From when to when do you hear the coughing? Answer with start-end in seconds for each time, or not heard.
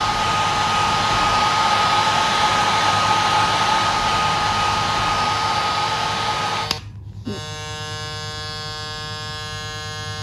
not heard.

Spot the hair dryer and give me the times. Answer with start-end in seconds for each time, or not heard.
0.0-6.7.